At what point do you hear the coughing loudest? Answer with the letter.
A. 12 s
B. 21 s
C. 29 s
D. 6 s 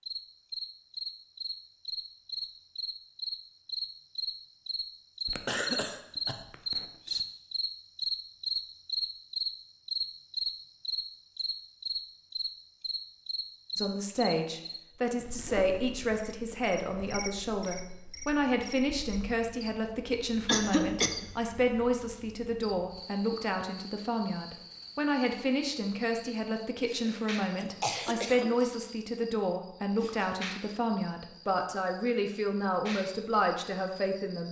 B.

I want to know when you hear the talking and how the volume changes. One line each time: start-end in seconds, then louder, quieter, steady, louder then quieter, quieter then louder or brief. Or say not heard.
13.8-34.4 steady.